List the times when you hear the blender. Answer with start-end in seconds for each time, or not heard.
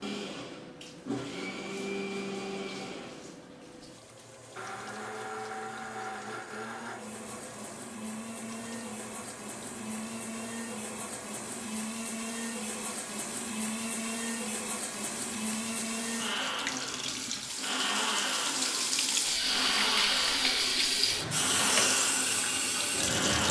0.0-23.4.